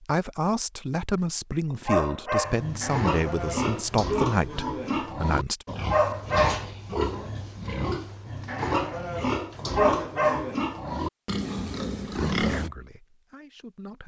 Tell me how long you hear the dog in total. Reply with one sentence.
You can hear the dog for 3 seconds altogether.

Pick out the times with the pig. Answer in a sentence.
You can hear the pig from 2.5 to 12.7 s.